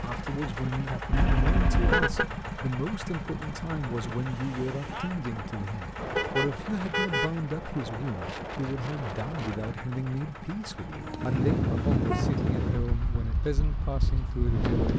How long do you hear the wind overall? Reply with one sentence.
The wind can be heard for 12 seconds in total.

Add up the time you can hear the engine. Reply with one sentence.
The engine can be heard for 13 seconds in total.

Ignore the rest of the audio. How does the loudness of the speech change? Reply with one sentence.
The loudness of the speech stays about the same.